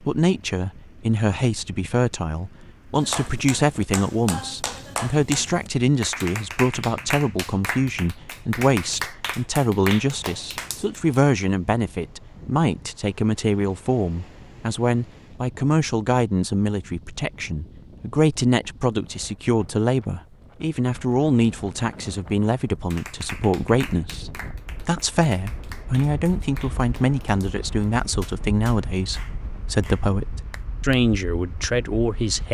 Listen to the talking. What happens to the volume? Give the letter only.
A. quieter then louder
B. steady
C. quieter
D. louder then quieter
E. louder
B.